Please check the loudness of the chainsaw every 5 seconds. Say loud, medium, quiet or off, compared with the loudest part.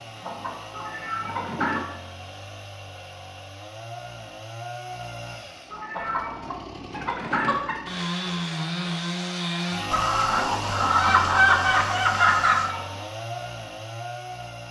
medium, loud, loud.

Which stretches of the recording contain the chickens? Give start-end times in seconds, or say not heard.
0.2-1.8, 5.9-7.9, 9.9-12.8.